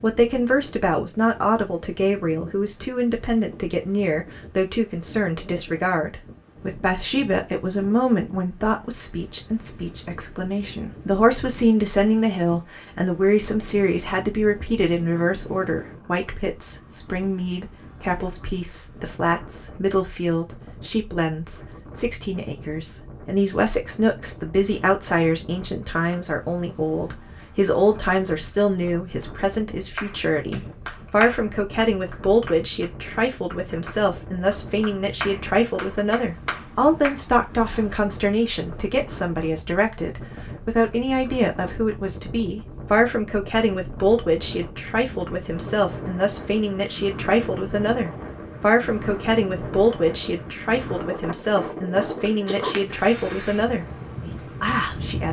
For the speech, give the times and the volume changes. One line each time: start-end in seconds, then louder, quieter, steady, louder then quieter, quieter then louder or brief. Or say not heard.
0.0-55.2 steady.